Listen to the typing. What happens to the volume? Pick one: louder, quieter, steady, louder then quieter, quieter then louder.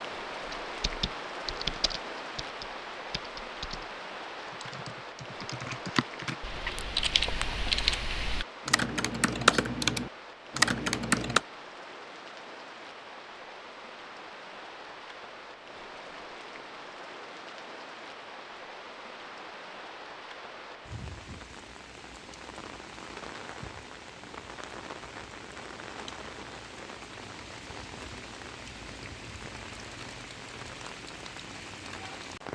quieter then louder.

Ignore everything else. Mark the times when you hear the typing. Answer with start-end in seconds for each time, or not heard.
0.5-11.4.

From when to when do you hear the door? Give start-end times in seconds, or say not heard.
not heard.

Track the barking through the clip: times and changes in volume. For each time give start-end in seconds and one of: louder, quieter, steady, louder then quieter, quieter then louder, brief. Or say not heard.
not heard.